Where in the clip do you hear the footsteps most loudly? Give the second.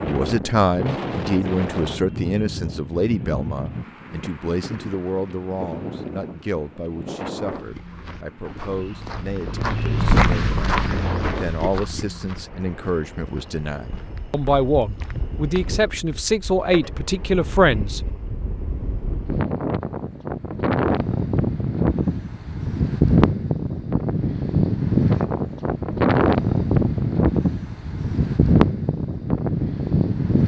10 s.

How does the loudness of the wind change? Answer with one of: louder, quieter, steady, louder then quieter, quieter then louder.
quieter then louder.